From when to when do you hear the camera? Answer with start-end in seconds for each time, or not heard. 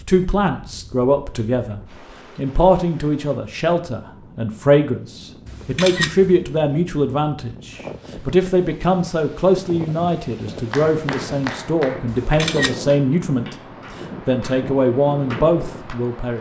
5.5-6.4, 12.1-12.8.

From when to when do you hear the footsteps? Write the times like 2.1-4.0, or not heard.
not heard.